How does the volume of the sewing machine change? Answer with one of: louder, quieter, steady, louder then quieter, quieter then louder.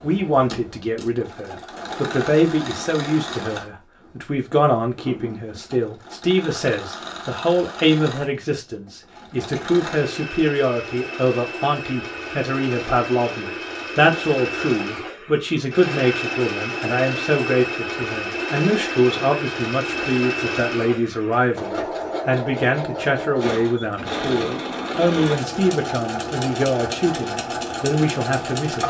louder.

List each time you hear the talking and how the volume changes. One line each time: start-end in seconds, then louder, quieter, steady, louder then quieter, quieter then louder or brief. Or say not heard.
0.0-28.8 steady.